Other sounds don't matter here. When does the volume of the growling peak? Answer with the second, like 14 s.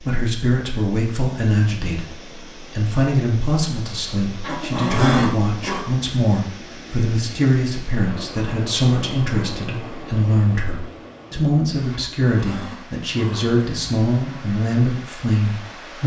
5 s.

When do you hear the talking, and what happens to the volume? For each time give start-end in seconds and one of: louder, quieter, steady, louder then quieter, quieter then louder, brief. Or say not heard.
0.0-16.0 steady.